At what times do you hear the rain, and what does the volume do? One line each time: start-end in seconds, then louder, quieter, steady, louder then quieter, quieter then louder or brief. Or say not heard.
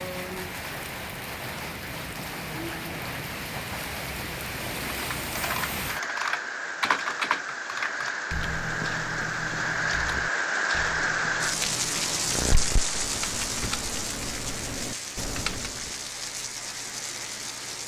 0.0-17.8 louder then quieter.